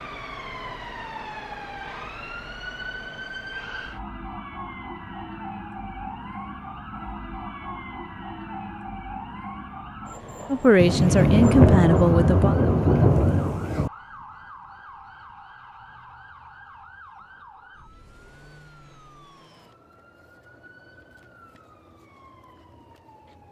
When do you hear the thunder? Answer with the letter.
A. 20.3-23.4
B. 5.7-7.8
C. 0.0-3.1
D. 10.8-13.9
D.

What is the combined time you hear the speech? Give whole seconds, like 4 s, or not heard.
2 s.